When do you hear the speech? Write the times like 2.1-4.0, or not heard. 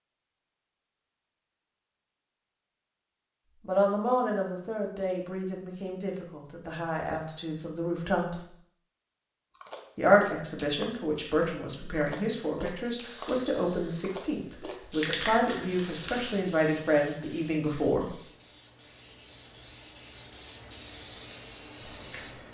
3.6-8.4, 9.9-18.1.